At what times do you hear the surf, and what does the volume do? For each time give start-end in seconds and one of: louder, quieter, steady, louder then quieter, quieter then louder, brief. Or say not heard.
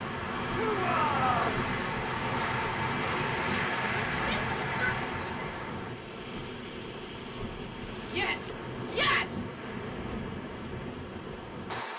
0.0-11.9 steady.